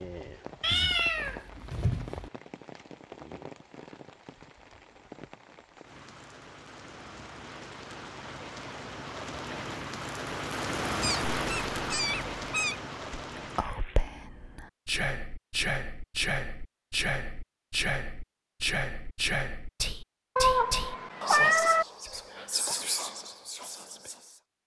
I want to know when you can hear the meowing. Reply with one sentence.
You can hear the meowing from 0.6 to 2.3 s, from 11.0 to 12.8 s and from 20.4 to 21.9 s.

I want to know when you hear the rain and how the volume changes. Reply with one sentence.
The rain can be heard from 0.0 to 14.1 s, getting louder.